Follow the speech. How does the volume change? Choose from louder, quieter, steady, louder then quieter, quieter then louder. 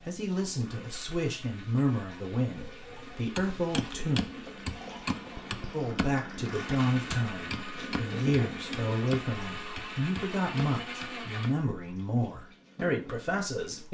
steady.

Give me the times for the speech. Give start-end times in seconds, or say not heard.
0.1-4.2, 5.7-13.8.